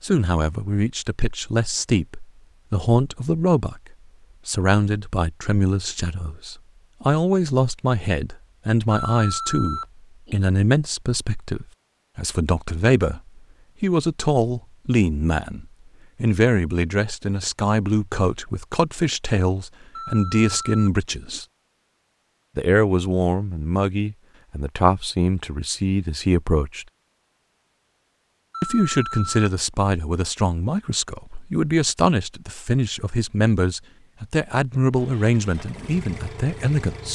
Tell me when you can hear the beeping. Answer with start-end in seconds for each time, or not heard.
8.9-10.3, 19.9-21.4, 28.5-29.5.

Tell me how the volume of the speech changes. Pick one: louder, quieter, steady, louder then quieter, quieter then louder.
steady.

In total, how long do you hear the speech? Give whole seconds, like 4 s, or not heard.
34 s.